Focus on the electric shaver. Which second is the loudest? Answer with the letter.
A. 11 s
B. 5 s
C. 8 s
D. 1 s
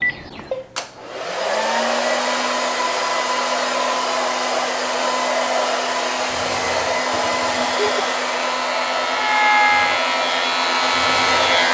A.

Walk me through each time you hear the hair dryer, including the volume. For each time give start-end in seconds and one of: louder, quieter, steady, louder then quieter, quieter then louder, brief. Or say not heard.
0.0-11.6 steady.